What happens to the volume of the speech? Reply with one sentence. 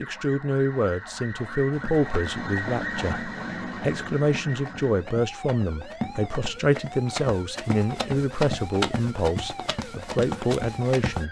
The loudness of the speech stays about the same.